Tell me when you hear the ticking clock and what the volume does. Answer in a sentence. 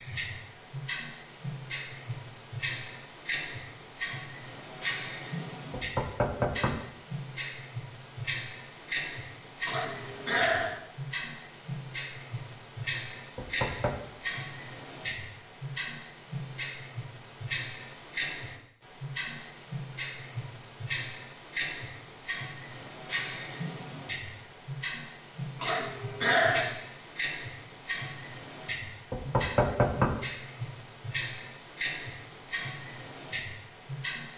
The ticking clock can be heard from 0.0 to 34.3 s, at a steady volume.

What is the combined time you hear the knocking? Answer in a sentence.
The knocking can be heard for 3 seconds in total.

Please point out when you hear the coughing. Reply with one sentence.
The coughing can be heard from 9.7 to 10.8 s and from 25.6 to 26.7 s.